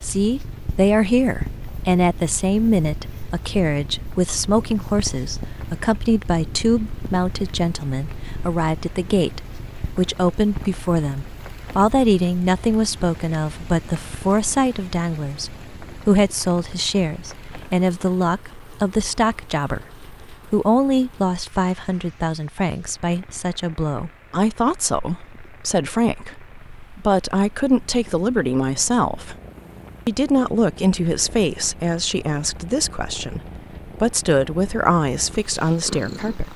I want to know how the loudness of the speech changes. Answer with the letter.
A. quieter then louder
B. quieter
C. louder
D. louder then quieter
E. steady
E.